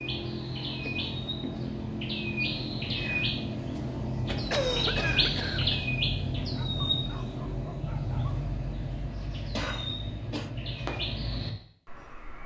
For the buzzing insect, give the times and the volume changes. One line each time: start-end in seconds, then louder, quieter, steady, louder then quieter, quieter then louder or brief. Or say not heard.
not heard.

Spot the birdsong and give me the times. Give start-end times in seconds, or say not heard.
0.0-12.4.